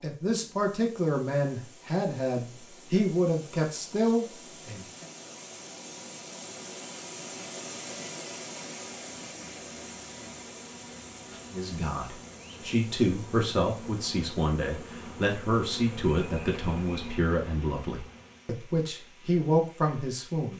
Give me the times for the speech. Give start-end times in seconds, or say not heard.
0.0-5.0, 11.5-20.5.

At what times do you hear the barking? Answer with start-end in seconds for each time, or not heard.
not heard.